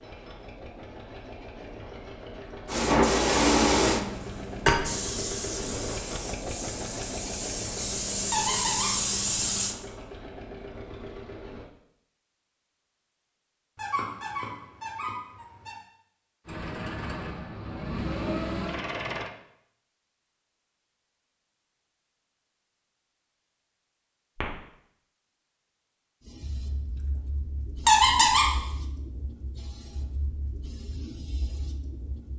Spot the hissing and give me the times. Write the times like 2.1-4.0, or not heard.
2.6-9.8, 26.2-32.3.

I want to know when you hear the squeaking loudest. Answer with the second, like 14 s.
28 s.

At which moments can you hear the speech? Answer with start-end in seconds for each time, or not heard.
not heard.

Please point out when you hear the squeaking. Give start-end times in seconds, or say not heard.
8.3-8.9, 13.8-15.8, 27.9-28.5.